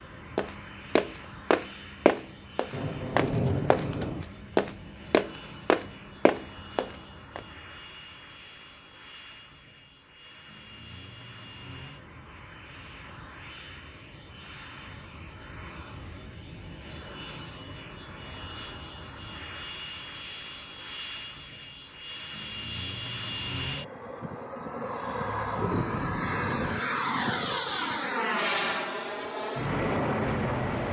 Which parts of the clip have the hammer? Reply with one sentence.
You can't hear the hammer here.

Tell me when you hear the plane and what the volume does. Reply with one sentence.
You can hear the plane from 0.0 to 30.8 s, getting louder.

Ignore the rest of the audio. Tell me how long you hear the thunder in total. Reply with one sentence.
The thunder can be heard for 3 seconds in total.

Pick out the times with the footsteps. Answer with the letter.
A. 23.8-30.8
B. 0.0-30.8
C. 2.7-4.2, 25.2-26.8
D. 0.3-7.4
D.